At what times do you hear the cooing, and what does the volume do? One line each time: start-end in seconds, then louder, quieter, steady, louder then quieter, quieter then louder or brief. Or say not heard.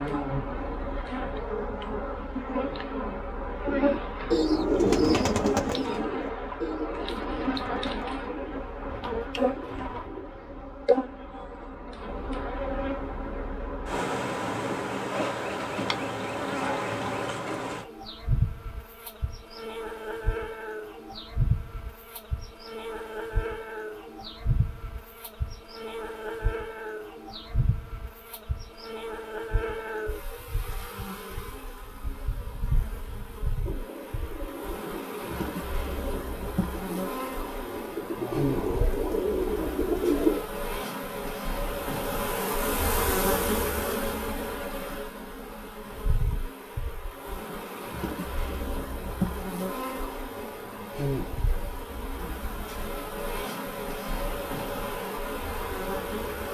3.6-10.7 quieter
33.6-40.5 louder.